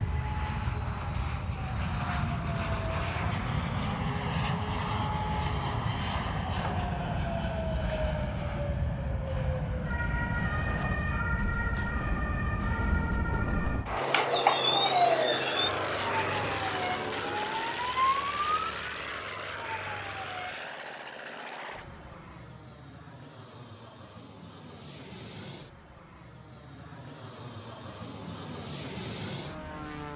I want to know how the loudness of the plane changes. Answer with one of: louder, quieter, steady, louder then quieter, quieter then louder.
quieter.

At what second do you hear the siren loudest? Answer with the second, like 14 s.
15 s.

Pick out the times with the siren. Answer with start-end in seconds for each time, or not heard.
0.0-20.6.